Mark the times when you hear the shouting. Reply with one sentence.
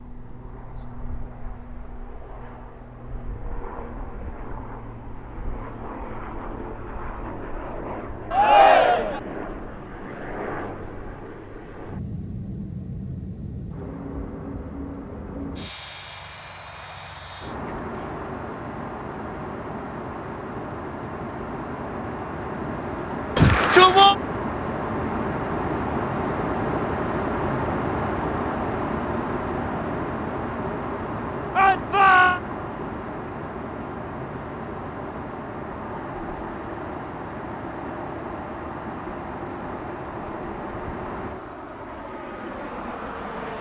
The shouting can be heard from 8.3 to 9.2 s, from 23.4 to 24.1 s and from 31.6 to 32.4 s.